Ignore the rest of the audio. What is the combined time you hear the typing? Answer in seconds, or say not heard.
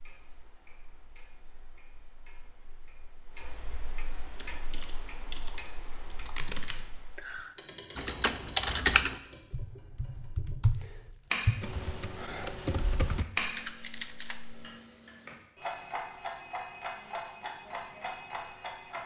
10 s.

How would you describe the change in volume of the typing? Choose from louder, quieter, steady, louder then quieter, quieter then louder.
louder then quieter.